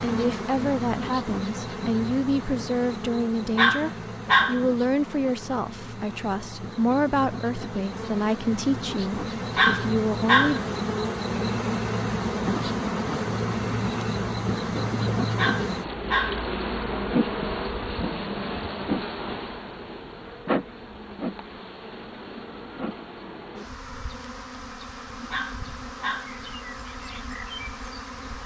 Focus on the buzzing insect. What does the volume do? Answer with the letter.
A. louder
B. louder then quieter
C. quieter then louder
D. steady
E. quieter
B.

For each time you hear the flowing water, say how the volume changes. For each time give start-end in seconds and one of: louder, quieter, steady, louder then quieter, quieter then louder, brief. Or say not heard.
not heard.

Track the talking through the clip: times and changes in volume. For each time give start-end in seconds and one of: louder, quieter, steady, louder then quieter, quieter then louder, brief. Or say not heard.
0.0-10.6 steady.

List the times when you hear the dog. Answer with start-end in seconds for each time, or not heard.
3.5-4.7, 9.6-10.7, 15.3-16.4, 25.3-26.4.